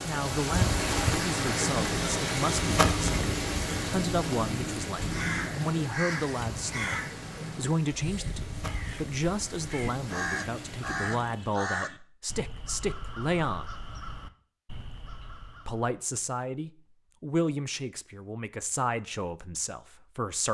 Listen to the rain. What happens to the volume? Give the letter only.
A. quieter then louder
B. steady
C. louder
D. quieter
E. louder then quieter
D.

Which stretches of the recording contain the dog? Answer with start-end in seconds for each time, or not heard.
not heard.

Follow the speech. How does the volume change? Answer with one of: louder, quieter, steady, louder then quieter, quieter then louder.
steady.